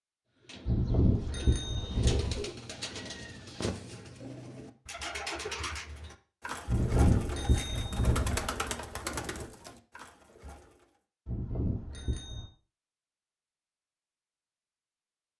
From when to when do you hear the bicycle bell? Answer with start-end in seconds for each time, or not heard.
0.7-2.4, 6.7-8.4, 11.2-12.4.